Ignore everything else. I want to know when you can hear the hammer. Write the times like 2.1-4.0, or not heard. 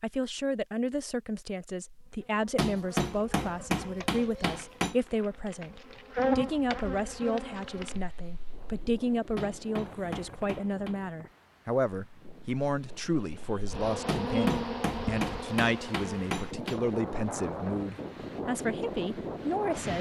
2.5-5.0, 9.3-10.9, 14.1-16.8.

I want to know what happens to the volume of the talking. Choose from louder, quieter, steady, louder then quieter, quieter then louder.
steady.